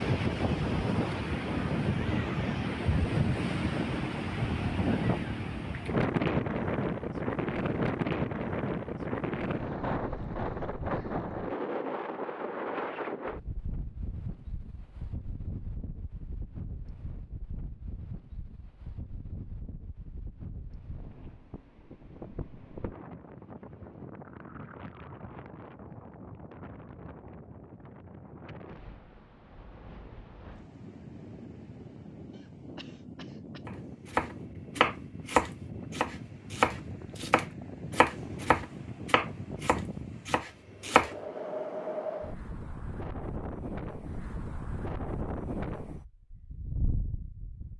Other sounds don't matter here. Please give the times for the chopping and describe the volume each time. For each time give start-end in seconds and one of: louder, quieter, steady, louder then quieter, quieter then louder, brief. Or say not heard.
33.6-41.1 quieter.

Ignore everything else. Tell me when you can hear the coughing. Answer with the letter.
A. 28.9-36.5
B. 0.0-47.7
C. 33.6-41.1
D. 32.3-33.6
D.